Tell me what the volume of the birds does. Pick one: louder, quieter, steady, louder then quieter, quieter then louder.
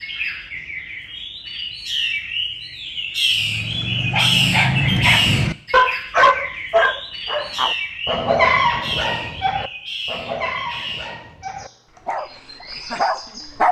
louder then quieter.